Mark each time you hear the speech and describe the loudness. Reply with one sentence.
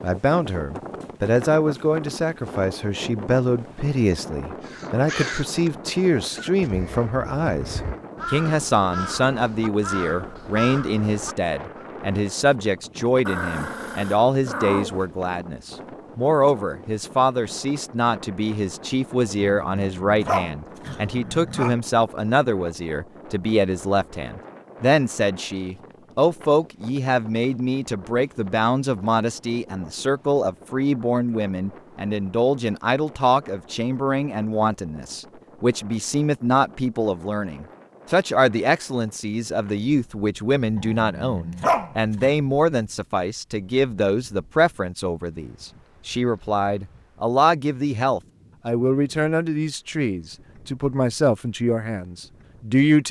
The speech can be heard from 0.0 to 53.0 s, at a steady volume.